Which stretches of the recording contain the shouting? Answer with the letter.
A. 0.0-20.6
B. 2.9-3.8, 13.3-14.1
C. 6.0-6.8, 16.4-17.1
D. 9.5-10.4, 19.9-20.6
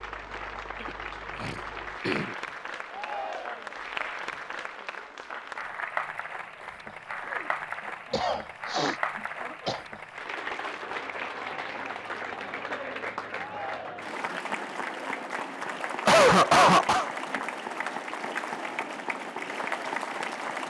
B.